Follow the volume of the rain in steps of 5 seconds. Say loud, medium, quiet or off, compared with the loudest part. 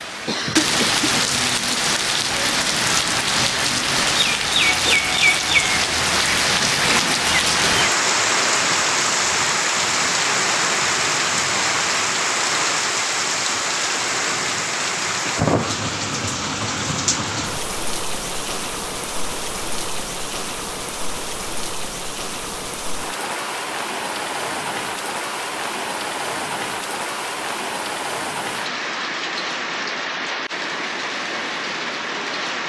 loud, loud, loud, medium, medium, medium, medium.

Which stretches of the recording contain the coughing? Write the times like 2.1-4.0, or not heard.
0.2-1.8.